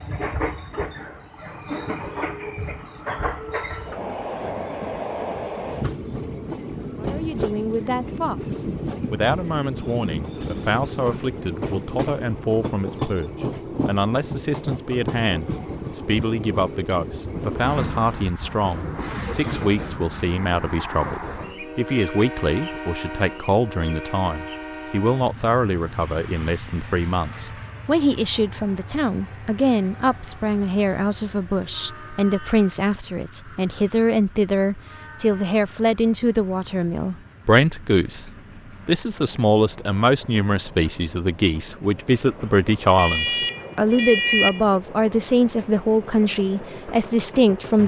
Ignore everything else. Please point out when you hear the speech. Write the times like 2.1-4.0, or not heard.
7.0-47.8.